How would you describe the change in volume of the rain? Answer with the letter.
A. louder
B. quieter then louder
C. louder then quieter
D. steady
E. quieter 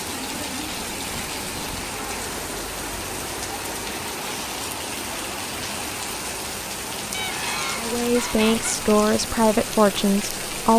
D.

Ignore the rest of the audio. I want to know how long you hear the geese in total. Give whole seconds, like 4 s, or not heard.
3 s.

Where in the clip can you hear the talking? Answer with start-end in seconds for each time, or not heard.
7.8-10.7.